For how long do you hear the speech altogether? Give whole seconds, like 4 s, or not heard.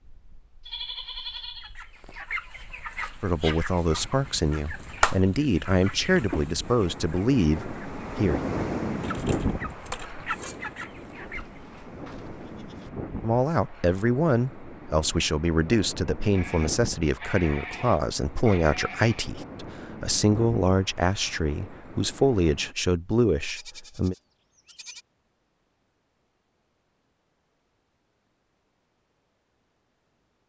16 s.